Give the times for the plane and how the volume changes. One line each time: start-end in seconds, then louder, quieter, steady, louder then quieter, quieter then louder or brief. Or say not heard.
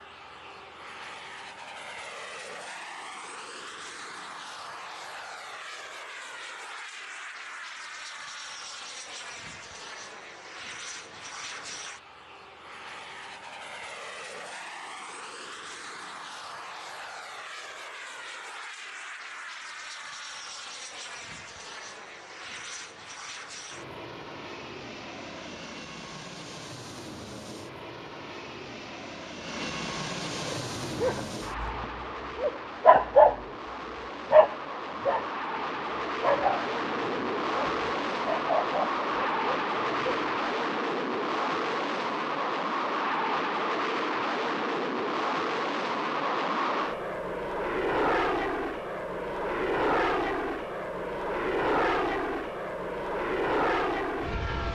0.0-54.7 louder.